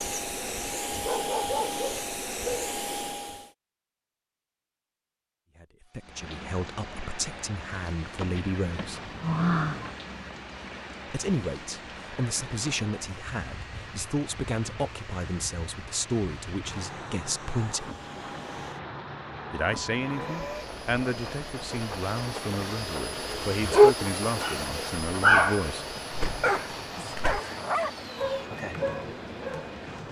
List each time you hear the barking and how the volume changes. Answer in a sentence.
The barking can be heard briefly from 0.0 to 2.7 s; and from 23.3 to 29.8 s, getting quieter.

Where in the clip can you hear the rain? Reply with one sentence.
You can hear the rain from 6.0 to 30.0 s.